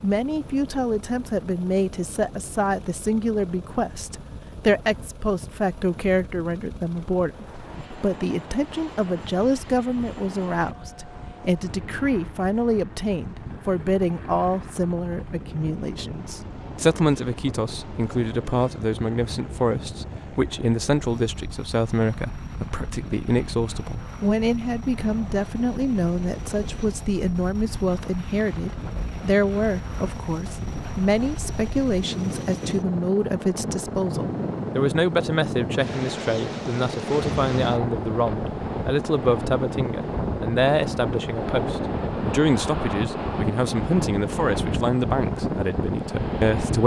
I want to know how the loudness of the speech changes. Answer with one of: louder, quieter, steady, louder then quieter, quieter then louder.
steady.